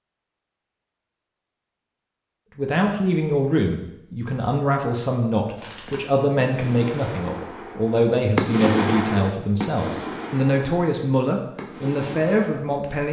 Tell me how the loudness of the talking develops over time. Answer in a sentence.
The volume of the talking stays about the same.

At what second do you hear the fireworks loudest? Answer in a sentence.
The volume of the fireworks peaks at 9 seconds.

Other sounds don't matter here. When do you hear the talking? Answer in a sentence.
You can hear the talking from 2.5 to 13.0 s.